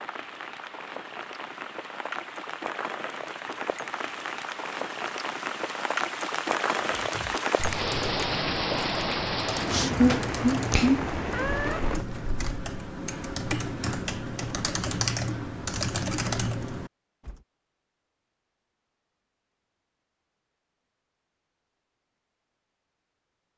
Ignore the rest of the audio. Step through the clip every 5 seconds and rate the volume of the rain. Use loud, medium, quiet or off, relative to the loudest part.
medium, loud, loud, off, off.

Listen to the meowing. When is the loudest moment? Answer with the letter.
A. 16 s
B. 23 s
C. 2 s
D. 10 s
D.